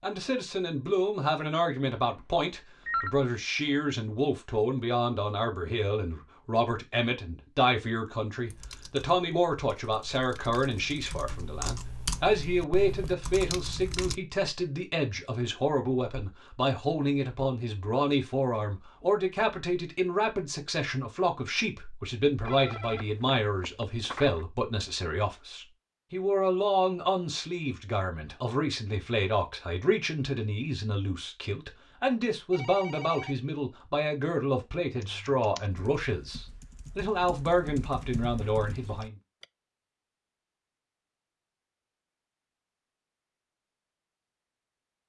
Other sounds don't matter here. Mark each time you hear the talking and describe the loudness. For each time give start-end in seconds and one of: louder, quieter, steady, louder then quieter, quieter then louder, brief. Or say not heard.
0.0-39.1 steady.